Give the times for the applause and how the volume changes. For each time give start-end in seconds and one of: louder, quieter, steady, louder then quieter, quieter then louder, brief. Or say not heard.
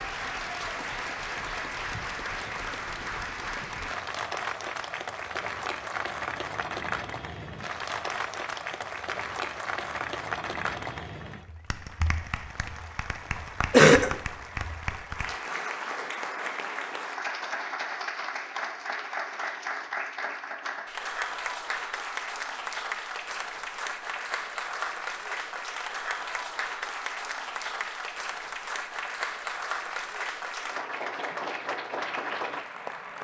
0.0-33.2 steady.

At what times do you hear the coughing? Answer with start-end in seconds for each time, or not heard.
13.7-14.2.